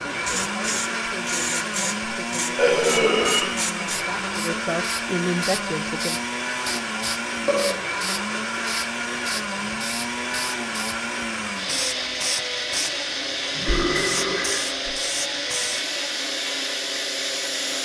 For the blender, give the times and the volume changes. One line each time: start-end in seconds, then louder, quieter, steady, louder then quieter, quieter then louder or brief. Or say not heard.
0.0-17.8 steady.